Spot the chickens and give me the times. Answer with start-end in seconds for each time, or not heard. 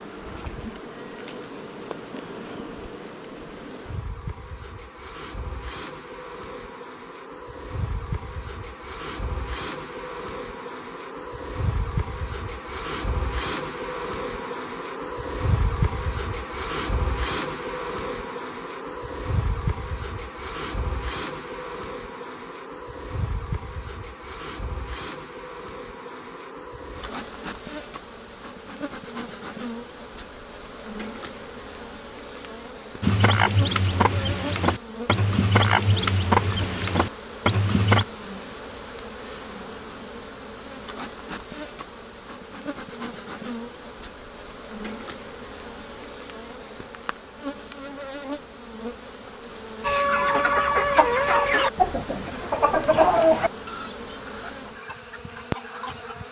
33.0-38.0, 49.8-56.1.